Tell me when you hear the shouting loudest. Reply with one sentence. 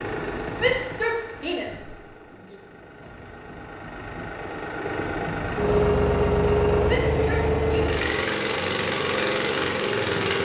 The volume of the shouting peaks at 1 second.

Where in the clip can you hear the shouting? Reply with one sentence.
The shouting can be heard from 0.6 to 2.6 s and from 6.8 to 8.0 s.